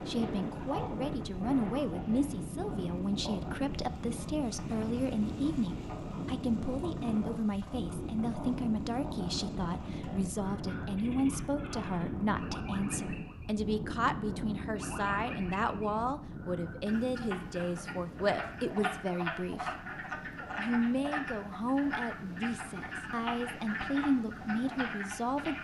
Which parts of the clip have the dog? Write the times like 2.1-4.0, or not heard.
not heard.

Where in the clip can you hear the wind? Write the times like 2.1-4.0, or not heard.
0.0-25.5.